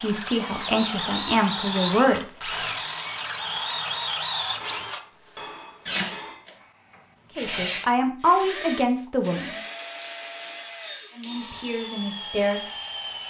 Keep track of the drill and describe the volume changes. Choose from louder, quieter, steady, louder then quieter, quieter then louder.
quieter.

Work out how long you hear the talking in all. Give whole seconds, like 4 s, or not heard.
6 s.